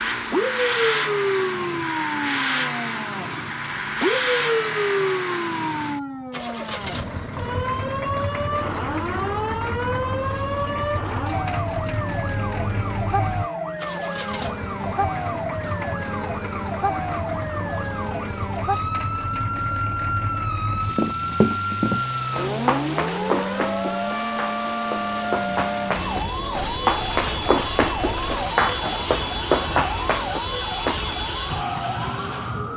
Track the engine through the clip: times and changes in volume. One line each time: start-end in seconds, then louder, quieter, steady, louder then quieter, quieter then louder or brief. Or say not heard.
0.0-32.7 quieter.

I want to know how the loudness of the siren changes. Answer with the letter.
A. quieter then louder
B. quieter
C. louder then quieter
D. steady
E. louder
D.